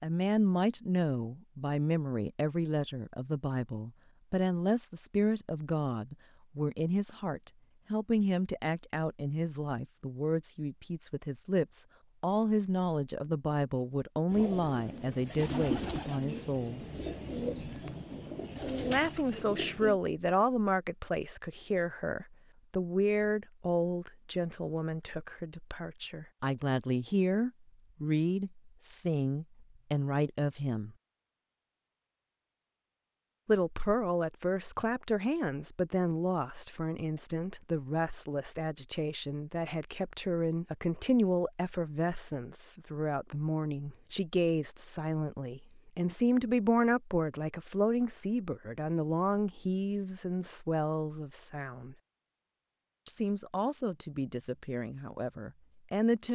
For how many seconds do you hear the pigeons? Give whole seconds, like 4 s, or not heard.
6 s.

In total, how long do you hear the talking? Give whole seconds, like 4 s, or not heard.
51 s.